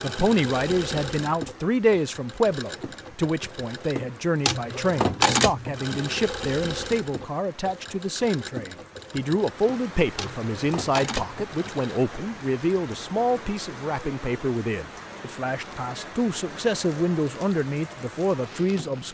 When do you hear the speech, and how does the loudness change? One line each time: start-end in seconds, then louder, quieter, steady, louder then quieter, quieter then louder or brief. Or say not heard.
0.0-19.0 steady.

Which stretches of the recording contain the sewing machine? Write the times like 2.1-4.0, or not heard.
0.0-12.0.